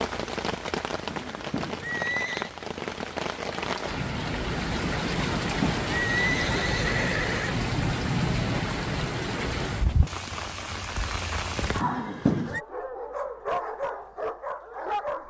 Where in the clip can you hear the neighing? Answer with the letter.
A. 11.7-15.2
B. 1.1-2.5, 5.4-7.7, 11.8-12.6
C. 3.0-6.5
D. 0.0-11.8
B.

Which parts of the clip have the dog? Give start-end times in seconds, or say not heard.
11.7-15.2.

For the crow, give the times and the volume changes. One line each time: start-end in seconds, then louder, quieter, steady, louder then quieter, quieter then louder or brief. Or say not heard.
not heard.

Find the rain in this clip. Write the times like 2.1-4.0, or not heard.
0.0-11.8.